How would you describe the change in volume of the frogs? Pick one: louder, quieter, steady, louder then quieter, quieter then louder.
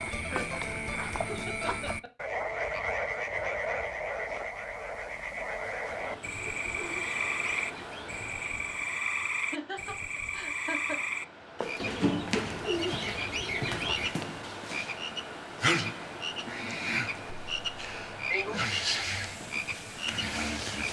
steady.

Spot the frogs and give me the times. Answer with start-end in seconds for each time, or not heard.
0.0-20.8.